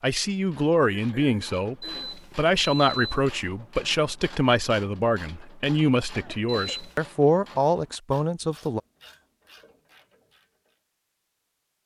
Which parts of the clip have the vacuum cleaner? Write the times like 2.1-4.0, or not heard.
not heard.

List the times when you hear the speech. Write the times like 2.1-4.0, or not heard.
0.0-8.8.